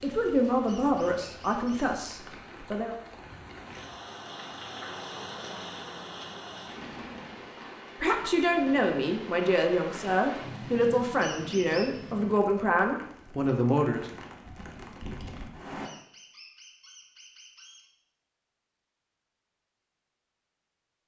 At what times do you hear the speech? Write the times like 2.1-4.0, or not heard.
0.0-3.0, 8.0-14.1.